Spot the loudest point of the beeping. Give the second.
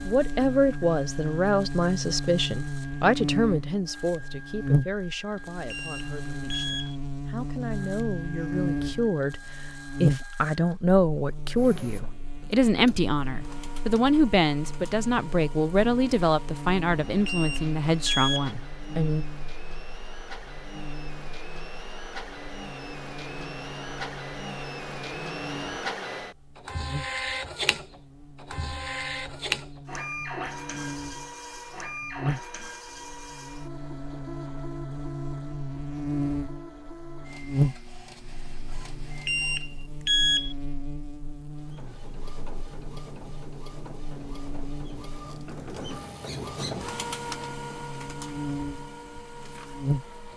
40 s.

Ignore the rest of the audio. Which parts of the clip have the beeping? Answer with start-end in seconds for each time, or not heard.
5.7-7.0, 17.2-18.6, 39.2-40.5.